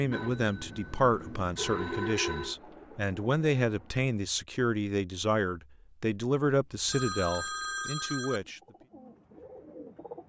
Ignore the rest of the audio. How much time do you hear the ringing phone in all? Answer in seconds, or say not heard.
4 s.